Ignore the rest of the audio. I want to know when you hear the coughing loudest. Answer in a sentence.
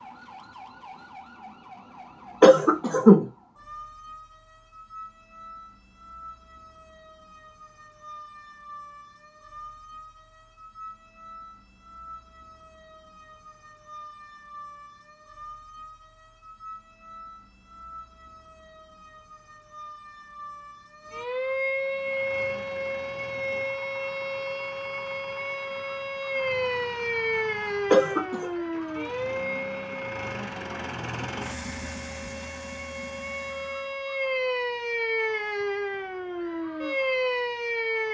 The loudest moment of the coughing is at 3 seconds.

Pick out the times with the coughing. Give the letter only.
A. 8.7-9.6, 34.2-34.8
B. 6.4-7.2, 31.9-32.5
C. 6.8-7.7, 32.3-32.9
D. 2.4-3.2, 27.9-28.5
D.